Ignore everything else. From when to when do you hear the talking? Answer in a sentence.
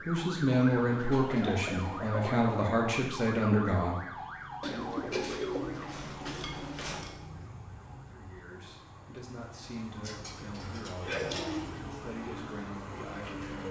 You can hear the talking from 0.0 to 5.2 s and from 8.1 to 13.6 s.